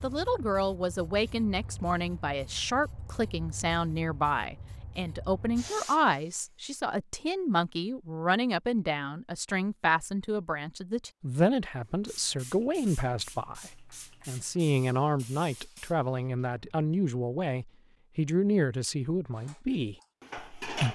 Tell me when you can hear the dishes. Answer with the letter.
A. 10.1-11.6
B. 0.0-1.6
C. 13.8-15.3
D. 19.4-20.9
D.